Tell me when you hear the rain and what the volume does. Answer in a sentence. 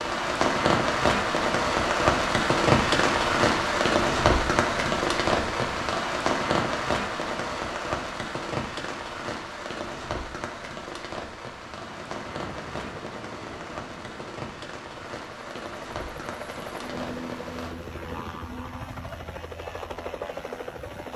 The rain can be heard from 0.0 to 17.8 s, getting quieter.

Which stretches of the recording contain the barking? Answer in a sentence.
You can't hear the barking here.